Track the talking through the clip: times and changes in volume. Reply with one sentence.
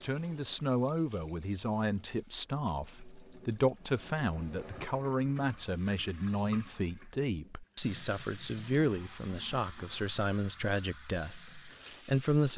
You can hear the talking from 0.0 to 12.5 s, at a steady volume.